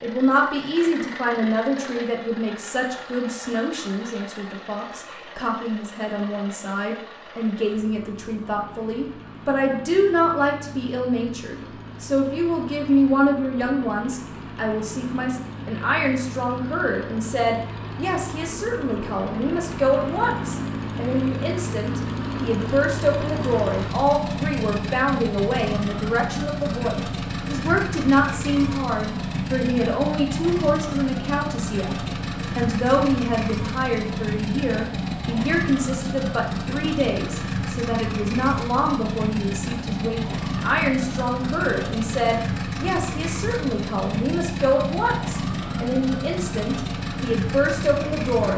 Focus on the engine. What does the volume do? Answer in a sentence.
The loudness of the engine goes up.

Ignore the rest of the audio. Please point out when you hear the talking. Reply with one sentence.
The talking can be heard from 0.0 to 48.5 s.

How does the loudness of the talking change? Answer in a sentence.
The loudness of the talking stays about the same.